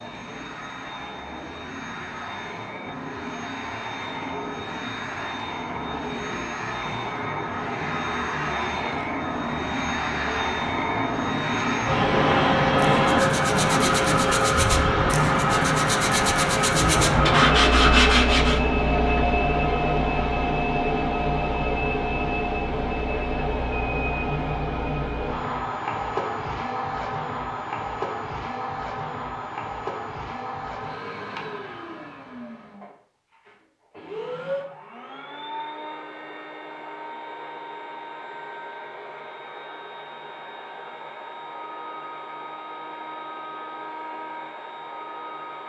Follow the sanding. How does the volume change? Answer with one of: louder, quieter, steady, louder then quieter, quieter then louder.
louder.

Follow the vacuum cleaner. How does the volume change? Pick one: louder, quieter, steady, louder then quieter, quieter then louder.
louder then quieter.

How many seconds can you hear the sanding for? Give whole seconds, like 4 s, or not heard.
6 s.